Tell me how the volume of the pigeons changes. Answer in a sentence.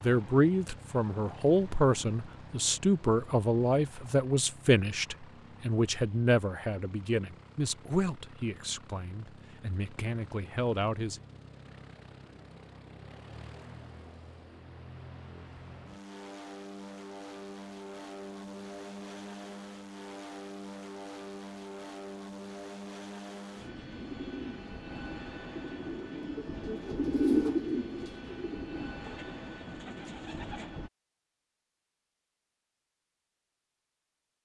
The volume of the pigeons goes up, then down.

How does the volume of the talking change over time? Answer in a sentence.
The volume of the talking goes down.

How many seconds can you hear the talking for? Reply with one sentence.
The talking can be heard for 11 seconds in total.